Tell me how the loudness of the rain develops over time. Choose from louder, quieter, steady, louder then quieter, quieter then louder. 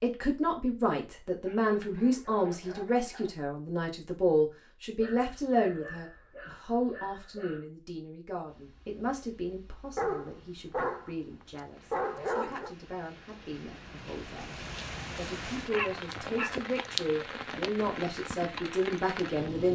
louder.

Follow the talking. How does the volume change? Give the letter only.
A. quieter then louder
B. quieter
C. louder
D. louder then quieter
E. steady
A.